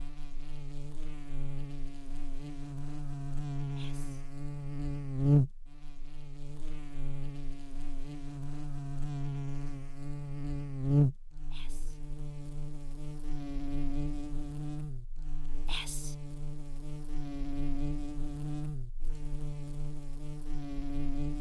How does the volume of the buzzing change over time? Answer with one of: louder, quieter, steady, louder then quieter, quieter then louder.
louder then quieter.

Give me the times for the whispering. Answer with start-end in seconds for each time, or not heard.
3.8-4.2, 11.5-12.0, 15.7-16.1.